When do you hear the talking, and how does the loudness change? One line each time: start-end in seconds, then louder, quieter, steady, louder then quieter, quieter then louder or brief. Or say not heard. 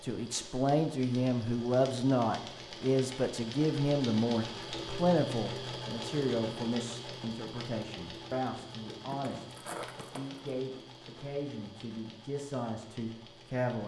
0.0-13.8 quieter.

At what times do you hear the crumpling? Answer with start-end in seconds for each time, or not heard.
9.1-10.4.